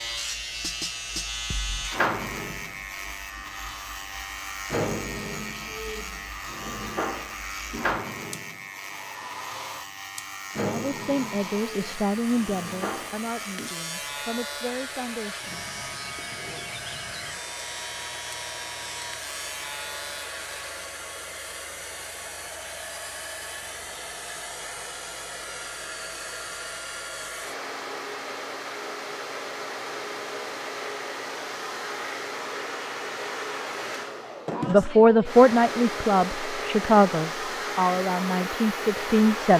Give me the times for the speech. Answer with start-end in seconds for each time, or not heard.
10.5-15.5, 34.6-39.5.